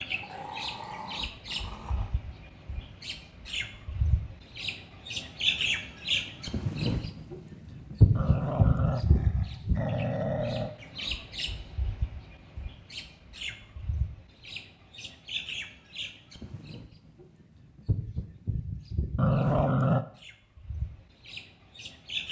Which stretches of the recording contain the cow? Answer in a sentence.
You can't hear the cow here.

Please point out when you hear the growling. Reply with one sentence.
The growling can be heard from 0.2 to 2.1 s, from 8.2 to 10.8 s and from 19.1 to 20.1 s.